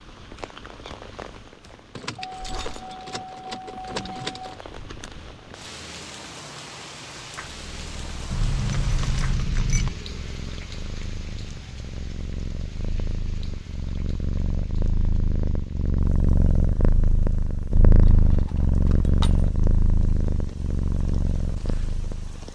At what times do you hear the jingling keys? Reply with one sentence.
You can hear the jingling keys from 1.9 to 4.5 s, from 8.3 to 9.9 s and from 18.1 to 19.5 s.